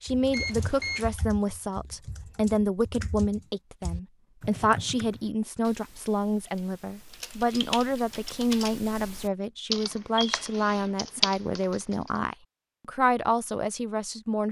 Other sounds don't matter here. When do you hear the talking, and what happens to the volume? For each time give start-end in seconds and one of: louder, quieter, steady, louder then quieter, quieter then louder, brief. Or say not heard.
0.0-14.4 steady.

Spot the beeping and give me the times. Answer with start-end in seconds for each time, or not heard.
0.3-1.1.